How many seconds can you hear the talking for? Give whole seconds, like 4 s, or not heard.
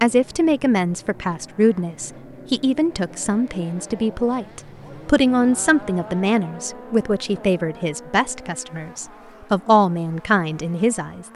11 s.